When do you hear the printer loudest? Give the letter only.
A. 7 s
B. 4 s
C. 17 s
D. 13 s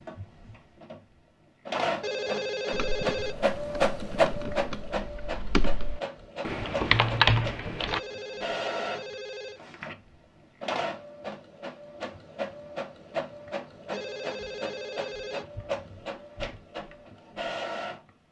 B.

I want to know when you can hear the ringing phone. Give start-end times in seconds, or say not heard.
2.0-3.4, 7.8-9.6, 13.9-15.4.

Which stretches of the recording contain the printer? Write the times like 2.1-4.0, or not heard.
0.0-18.1.